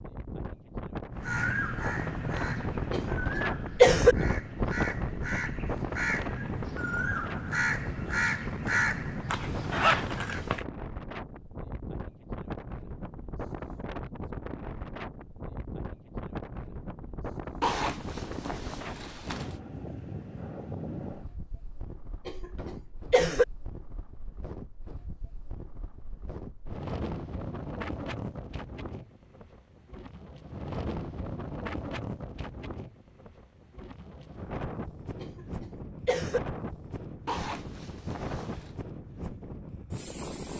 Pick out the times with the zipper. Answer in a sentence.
The zipper can be heard from 9.3 to 10.7 s, from 17.6 to 19.6 s and from 37.2 to 38.8 s.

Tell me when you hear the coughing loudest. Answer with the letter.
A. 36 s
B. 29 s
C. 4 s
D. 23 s
C.